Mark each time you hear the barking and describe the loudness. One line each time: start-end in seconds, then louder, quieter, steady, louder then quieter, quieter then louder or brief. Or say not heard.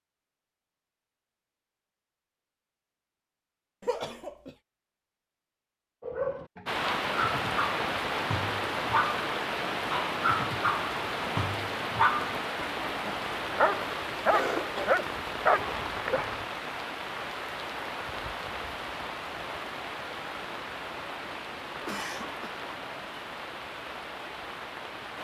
6.0-16.4 louder.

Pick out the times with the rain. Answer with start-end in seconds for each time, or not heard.
6.7-25.1.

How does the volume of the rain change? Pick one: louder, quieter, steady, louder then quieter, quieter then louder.
quieter.